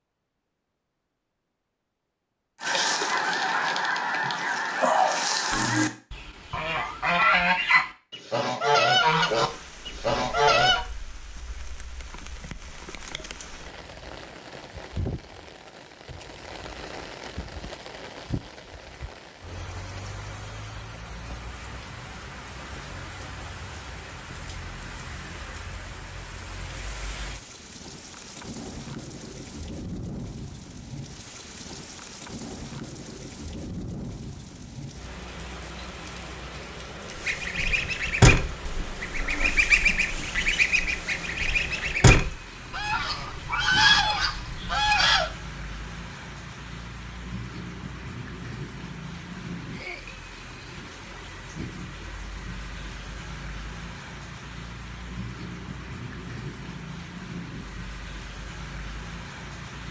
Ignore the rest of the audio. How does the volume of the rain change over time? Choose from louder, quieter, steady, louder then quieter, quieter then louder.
steady.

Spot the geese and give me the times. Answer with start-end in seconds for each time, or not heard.
2.6-10.8, 37.1-45.3.